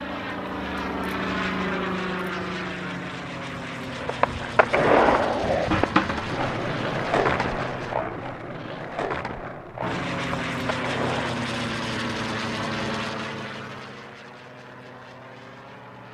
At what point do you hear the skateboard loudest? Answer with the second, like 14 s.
5 s.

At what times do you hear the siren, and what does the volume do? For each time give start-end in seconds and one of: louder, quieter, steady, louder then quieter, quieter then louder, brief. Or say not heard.
not heard.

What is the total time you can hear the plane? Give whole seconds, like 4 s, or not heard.
14 s.